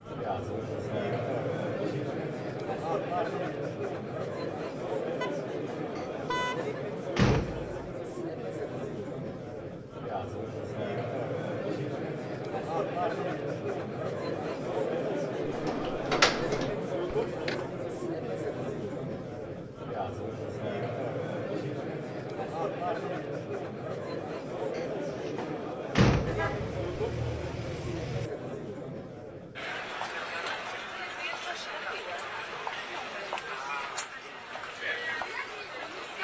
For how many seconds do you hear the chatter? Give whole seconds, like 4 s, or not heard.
36 s.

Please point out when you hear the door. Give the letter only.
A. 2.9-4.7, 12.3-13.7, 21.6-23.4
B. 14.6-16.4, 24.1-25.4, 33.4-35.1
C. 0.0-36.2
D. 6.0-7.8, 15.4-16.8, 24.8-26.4
D.